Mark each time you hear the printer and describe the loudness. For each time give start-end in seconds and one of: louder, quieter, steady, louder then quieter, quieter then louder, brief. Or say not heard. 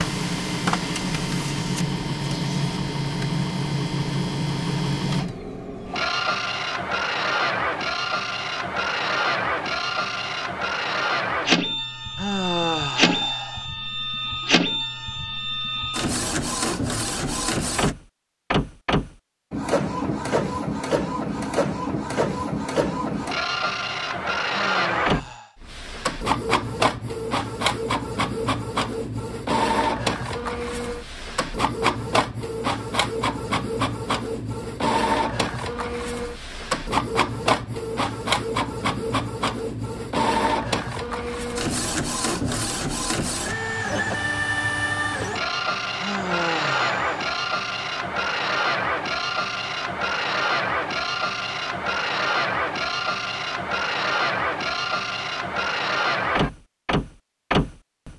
0.0-58.1 steady.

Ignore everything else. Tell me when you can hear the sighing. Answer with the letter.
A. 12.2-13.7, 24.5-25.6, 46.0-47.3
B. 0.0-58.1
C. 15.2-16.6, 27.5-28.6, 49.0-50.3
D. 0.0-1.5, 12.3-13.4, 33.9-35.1
A.